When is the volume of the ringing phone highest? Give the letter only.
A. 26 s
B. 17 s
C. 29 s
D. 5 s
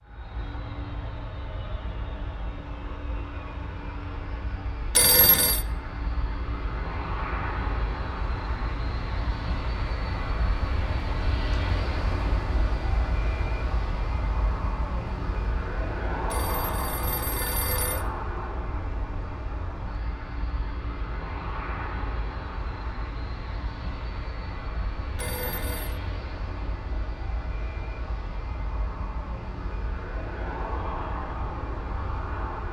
D.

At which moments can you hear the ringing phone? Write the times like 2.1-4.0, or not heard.
5.0-5.7, 16.3-18.1, 25.1-26.0.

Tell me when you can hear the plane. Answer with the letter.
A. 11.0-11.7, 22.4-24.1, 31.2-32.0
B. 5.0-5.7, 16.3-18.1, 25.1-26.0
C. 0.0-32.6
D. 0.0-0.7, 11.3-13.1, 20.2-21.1
C.